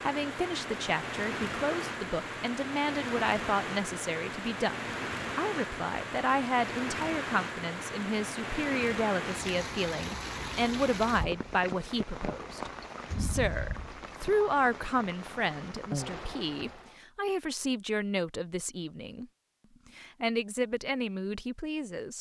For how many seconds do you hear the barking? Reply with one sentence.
You can't hear the barking here.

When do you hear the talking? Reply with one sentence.
The talking can be heard from 0.0 to 19.2 s and from 19.9 to 22.1 s.